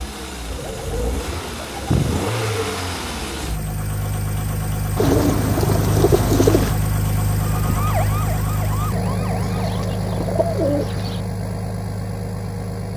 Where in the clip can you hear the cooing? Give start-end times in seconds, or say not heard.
0.5-2.8, 5.0-6.8, 9.5-11.2.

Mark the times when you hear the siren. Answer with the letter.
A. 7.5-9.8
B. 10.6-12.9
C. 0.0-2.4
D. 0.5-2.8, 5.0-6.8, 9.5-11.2
A.